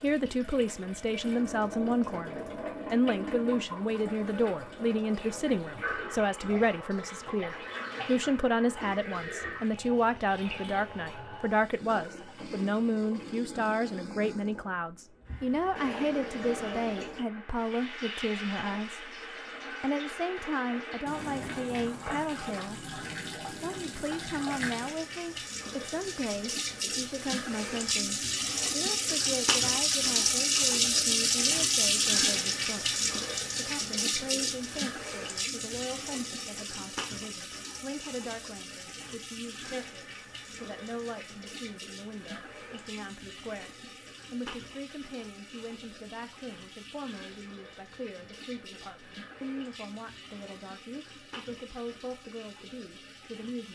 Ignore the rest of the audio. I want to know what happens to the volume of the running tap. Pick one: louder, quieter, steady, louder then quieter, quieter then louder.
louder then quieter.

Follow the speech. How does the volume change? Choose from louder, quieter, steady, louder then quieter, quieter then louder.
quieter.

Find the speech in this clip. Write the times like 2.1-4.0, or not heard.
0.0-53.7.